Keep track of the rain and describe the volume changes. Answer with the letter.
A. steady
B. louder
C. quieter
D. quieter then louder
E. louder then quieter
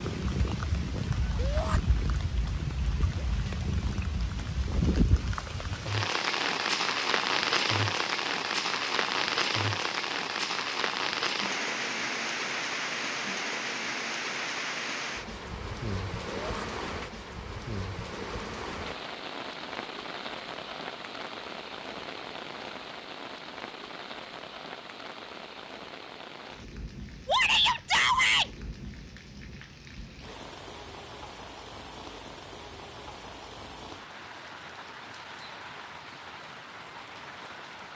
C.